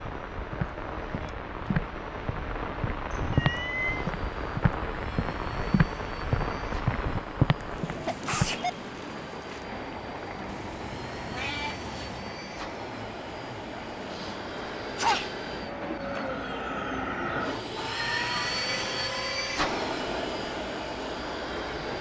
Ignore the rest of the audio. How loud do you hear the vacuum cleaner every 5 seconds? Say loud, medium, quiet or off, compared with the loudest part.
quiet, quiet, medium, loud, loud.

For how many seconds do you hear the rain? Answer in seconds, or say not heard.
22 s.